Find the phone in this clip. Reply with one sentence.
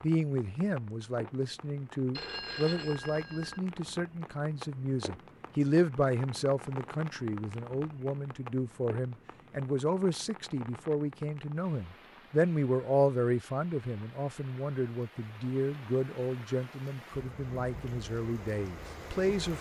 The phone can be heard from 2.1 to 3.6 s.